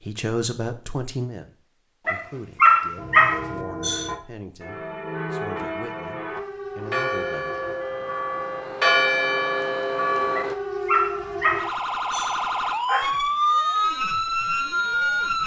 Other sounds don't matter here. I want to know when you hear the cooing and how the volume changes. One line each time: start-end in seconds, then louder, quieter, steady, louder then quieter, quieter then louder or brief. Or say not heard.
not heard.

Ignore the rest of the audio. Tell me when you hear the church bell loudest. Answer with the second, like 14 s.
9 s.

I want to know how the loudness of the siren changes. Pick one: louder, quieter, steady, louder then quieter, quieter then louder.
louder.